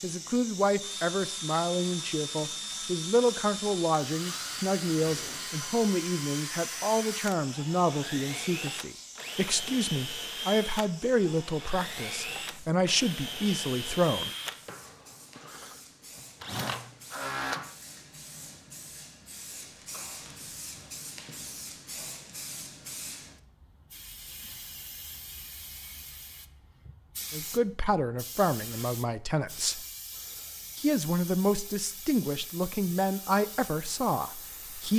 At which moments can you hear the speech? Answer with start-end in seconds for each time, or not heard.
0.0-14.3, 27.3-29.9, 30.8-34.9.